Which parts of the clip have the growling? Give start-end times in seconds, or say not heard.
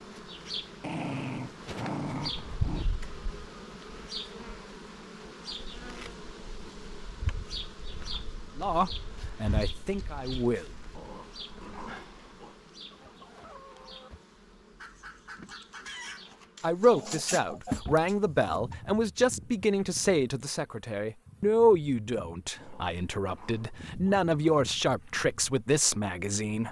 0.8-2.9, 10.9-12.6, 22.6-24.6.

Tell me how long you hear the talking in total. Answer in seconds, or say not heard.
12 s.